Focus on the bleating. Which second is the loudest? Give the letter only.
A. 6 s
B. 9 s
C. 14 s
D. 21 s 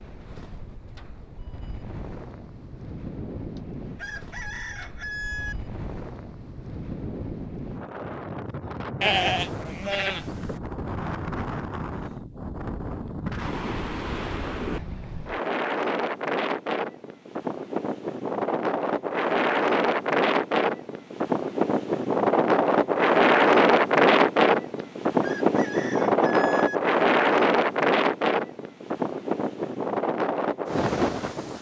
B.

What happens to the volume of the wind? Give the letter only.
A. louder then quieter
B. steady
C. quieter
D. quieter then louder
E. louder
E.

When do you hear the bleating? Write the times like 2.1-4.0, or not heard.
9.0-10.6.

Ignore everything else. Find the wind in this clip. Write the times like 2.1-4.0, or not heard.
0.0-31.5.